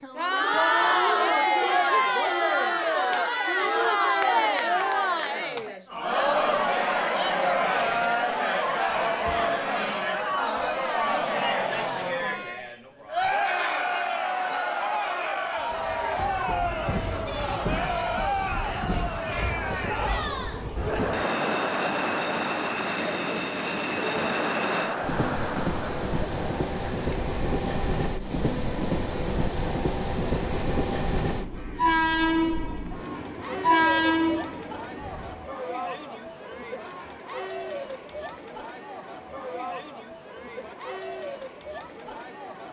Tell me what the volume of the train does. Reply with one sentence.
The loudness of the train goes up.